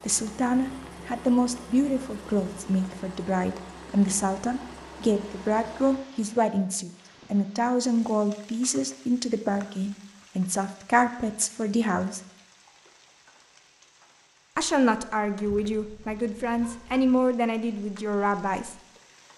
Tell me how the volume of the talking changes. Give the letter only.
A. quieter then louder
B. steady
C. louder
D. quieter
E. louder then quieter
B.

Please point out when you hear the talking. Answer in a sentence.
The talking can be heard from 0.0 to 12.2 s and from 14.6 to 18.8 s.